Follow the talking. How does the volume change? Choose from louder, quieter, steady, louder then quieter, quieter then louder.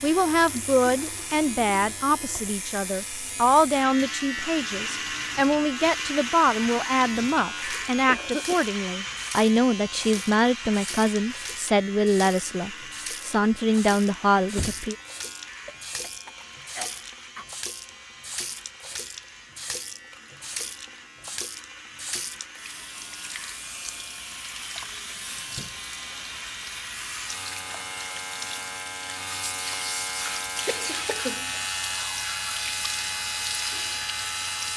steady.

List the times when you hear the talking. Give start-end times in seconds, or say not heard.
0.0-14.9.